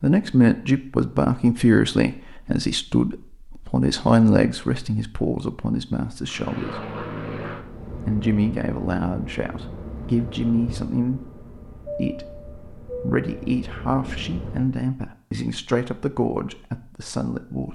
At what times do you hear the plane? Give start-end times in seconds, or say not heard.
6.2-14.8.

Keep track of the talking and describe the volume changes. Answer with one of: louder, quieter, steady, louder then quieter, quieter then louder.
quieter.